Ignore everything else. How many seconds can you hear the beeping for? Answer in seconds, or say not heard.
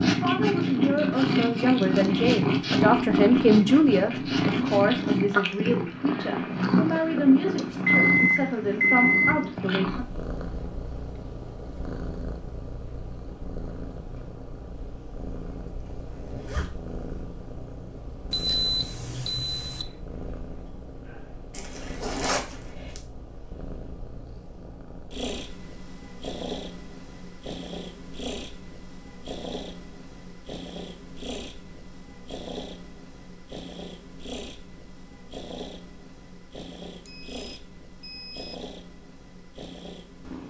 5 s.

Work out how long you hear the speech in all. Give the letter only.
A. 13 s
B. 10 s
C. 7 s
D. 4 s
B.